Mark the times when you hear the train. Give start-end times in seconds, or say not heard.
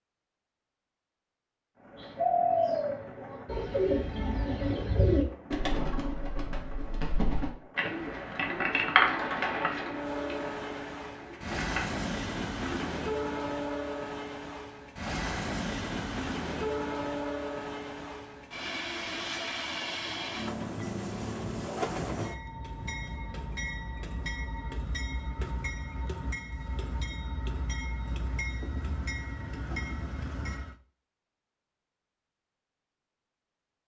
1.8-30.8.